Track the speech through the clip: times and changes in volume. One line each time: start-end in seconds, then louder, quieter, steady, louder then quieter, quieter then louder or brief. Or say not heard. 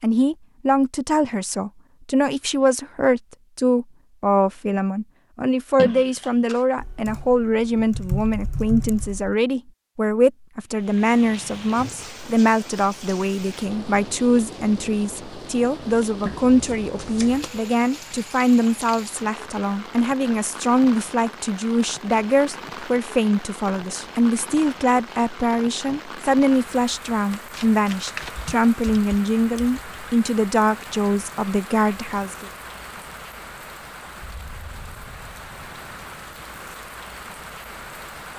0.0-32.5 steady.